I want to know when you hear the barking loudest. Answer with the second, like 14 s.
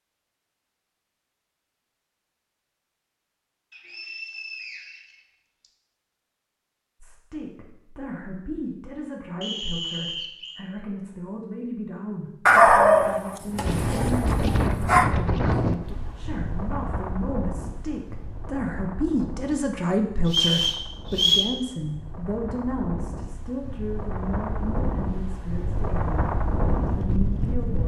13 s.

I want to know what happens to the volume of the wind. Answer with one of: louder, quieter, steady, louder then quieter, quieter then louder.
quieter then louder.